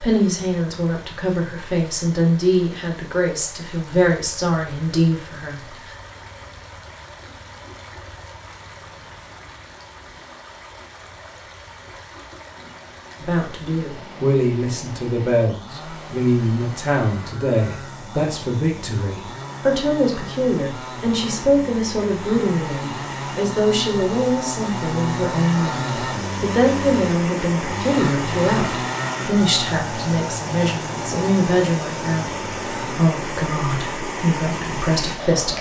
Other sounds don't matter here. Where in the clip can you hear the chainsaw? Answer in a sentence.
You can hear the chainsaw from 12.6 to 33.0 s.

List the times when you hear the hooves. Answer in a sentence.
You can't hear the hooves here.